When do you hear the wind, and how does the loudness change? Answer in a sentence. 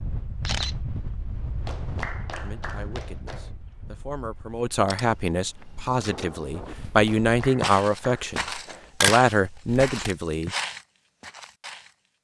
You can hear the wind from 0.0 to 6.8 s, getting quieter then louder.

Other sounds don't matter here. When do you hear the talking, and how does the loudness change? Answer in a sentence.
The talking can be heard from 2.4 to 10.5 s, getting louder.